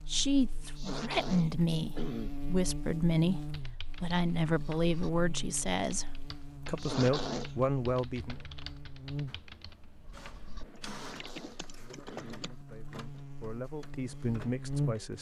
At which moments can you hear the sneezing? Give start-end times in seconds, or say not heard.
0.6-2.4, 6.7-7.5, 10.9-12.5.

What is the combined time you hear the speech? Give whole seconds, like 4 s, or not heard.
12 s.